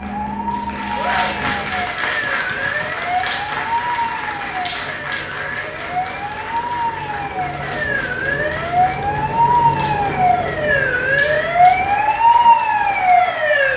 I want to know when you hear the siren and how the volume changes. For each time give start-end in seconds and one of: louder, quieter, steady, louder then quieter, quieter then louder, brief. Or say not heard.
0.0-13.7 louder.